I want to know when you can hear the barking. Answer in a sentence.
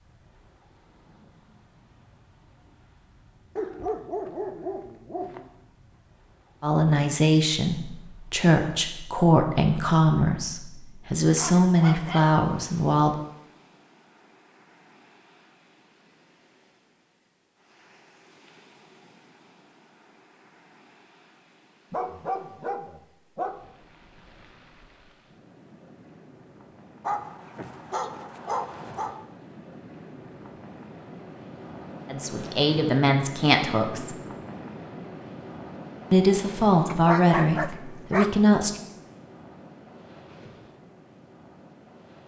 The barking can be heard from 3.5 to 5.5 s, from 11.3 to 12.3 s, from 21.9 to 23.6 s, from 27.0 to 29.1 s and from 36.9 to 38.3 s.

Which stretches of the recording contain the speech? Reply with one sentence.
The speech can be heard from 6.6 to 13.2 s, from 32.1 to 34.1 s and from 36.1 to 38.7 s.